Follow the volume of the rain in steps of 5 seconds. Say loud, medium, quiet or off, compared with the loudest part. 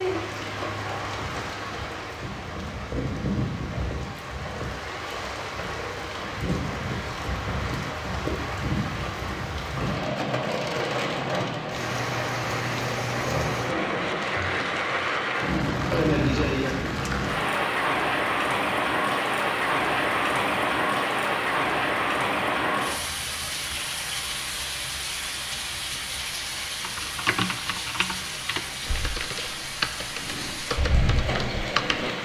medium, medium, loud, loud, loud, medium, medium.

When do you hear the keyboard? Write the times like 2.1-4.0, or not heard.
26.8-32.1.